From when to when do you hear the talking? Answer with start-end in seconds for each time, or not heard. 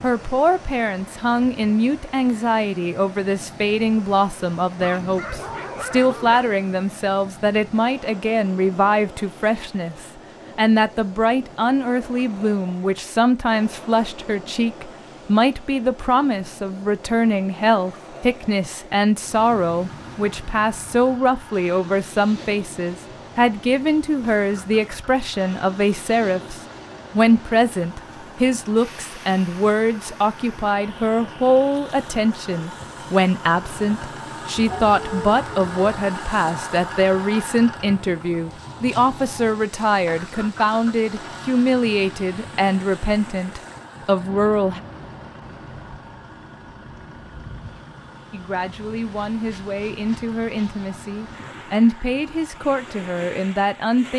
0.0-44.8, 48.3-54.1.